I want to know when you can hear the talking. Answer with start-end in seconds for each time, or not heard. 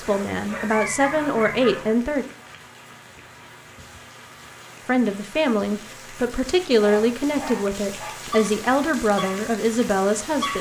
0.0-2.2, 4.8-10.5.